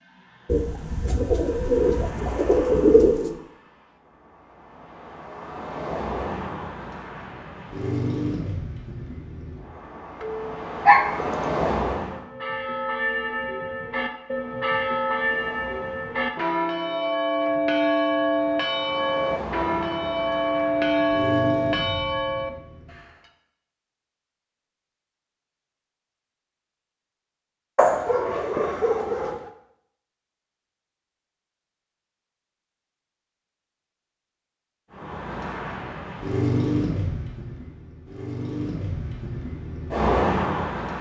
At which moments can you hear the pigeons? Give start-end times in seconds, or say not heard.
0.5-3.4.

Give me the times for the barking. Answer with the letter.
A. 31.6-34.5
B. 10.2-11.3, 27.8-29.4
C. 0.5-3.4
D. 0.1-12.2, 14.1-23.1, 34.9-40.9
B.